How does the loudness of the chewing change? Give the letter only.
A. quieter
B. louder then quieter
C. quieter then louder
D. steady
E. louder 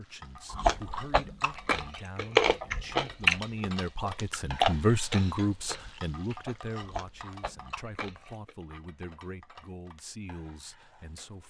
B.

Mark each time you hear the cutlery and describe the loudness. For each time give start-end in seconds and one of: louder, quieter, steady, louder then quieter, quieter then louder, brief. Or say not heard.
not heard.